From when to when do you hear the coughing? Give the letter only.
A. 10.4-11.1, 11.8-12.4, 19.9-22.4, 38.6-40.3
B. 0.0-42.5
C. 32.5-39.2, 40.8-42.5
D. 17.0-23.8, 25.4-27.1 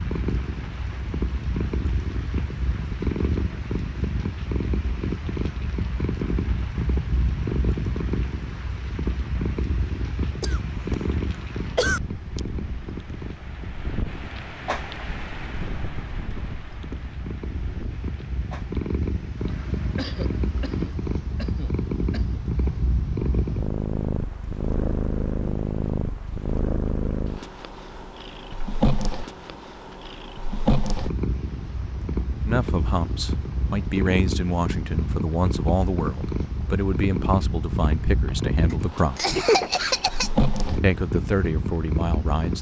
A.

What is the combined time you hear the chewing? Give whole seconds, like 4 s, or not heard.
not heard.